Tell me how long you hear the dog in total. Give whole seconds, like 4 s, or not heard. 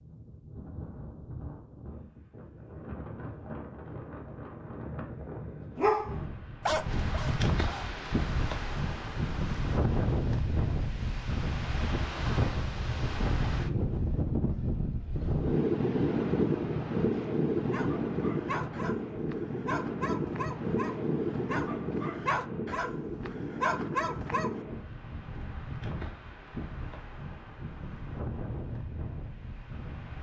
9 s.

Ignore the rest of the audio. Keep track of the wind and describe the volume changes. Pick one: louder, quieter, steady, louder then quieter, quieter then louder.
louder then quieter.